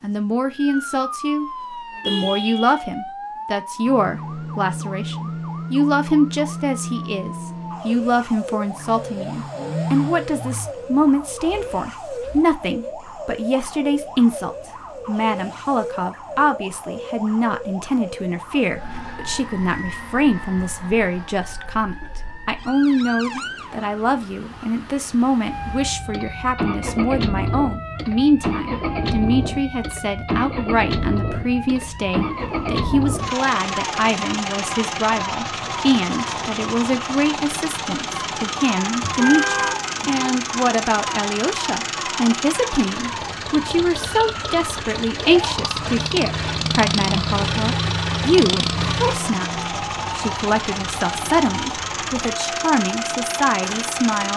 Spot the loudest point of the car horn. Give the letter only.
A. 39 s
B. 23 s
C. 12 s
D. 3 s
A.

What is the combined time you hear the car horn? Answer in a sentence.
The car horn can be heard for 2 seconds in total.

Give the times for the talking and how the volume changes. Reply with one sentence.
The talking can be heard briefly from 0.0 to 1.4 s; and from 2.0 to 54.3 s, at a steady volume.